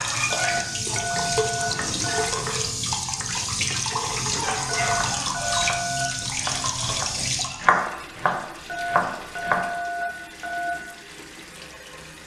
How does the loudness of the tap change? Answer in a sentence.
The volume of the tap goes down.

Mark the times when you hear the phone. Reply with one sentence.
You can hear the phone from 0.3 to 2.2 s, from 4.7 to 6.0 s and from 8.7 to 10.7 s.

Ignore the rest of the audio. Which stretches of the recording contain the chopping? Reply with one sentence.
You can hear the chopping from 0.5 to 9.7 s.